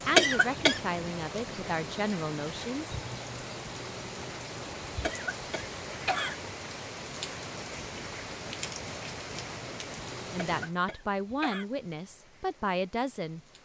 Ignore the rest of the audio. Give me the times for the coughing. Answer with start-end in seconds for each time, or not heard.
0.1-0.8, 5.0-6.3, 10.3-11.7.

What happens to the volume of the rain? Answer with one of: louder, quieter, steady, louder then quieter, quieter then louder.
quieter.